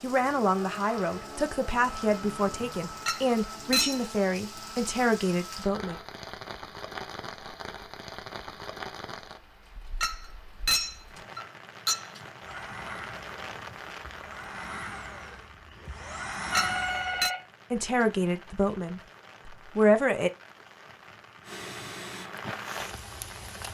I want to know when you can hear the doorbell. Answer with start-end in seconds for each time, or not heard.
16.5-17.4.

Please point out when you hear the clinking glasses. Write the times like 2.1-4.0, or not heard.
3.0-4.0, 10.0-12.1, 16.5-17.3.